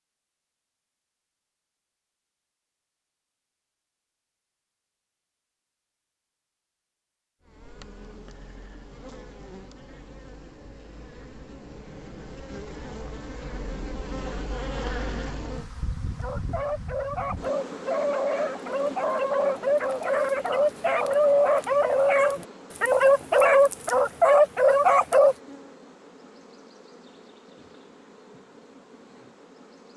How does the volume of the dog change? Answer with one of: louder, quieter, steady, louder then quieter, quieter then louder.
louder.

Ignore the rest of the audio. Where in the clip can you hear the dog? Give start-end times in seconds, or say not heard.
16.1-25.4.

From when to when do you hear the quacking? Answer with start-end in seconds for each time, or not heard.
not heard.